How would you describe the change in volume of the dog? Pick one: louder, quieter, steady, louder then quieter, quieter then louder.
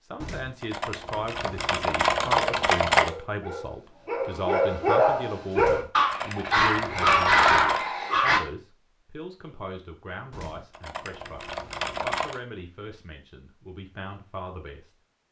louder.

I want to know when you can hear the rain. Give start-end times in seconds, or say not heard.
not heard.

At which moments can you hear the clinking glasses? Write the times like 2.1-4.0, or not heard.
not heard.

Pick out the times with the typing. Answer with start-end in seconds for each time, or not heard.
0.2-3.1, 5.5-7.9, 10.3-12.4.